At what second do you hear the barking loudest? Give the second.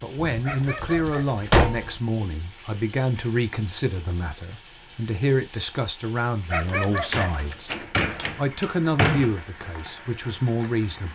7 s.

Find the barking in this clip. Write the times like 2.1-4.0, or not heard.
0.4-1.7, 6.5-7.8.